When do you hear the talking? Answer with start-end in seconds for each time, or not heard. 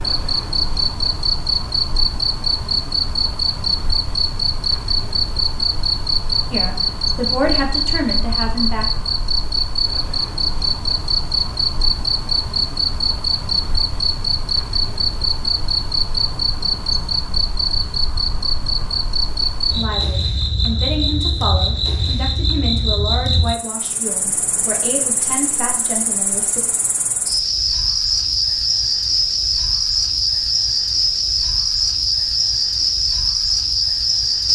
6.5-8.8, 19.8-26.6.